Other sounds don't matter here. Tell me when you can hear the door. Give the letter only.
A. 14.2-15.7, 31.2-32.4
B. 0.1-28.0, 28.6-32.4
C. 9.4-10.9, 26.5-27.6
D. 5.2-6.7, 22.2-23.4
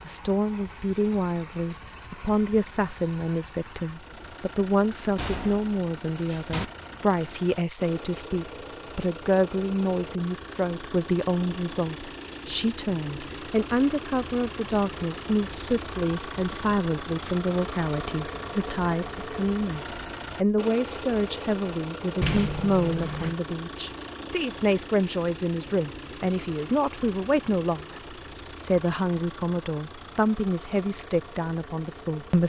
D.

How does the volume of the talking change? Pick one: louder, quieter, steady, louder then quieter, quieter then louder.
steady.